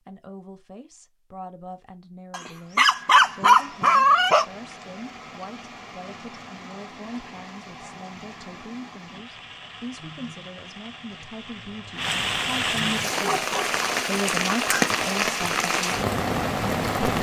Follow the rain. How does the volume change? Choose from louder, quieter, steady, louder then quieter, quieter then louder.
louder.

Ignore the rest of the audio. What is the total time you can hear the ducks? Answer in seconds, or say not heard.
not heard.